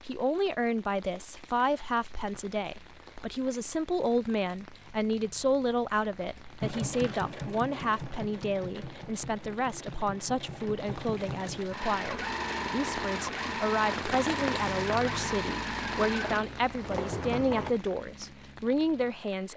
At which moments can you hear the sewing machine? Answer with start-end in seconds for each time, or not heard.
6.6-17.8.